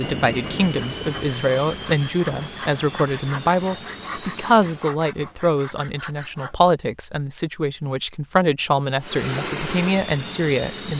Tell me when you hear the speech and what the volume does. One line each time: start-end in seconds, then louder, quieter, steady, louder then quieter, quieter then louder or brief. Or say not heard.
0.0-10.9 steady.